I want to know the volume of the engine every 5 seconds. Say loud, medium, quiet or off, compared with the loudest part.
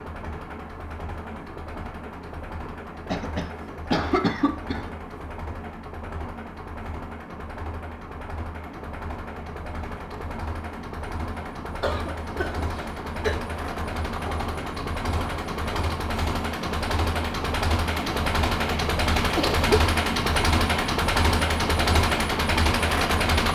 quiet, quiet, medium, loud, loud.